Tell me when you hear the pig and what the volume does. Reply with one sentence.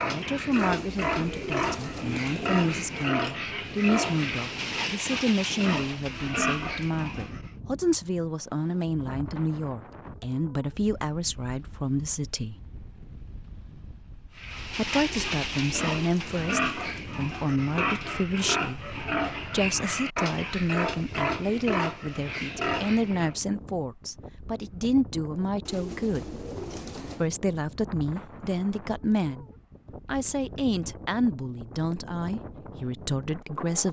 You can hear the pig from 0.0 to 7.5 s, at a steady volume; and from 14.3 to 23.4 s, at a steady volume.